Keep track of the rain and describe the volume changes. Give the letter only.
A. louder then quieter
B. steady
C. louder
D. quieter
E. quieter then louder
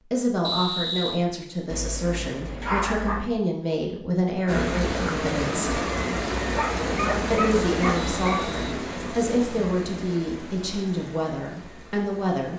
D.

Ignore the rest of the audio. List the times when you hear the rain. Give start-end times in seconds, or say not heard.
4.5-12.5.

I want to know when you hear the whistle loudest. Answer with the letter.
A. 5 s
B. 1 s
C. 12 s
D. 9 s
B.